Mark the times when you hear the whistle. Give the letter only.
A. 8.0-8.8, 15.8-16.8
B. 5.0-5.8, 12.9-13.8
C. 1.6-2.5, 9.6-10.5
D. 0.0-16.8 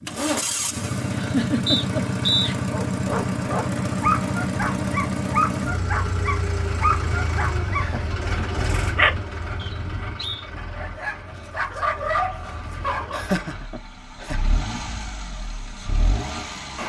C.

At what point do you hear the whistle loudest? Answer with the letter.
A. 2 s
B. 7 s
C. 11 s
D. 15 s
A.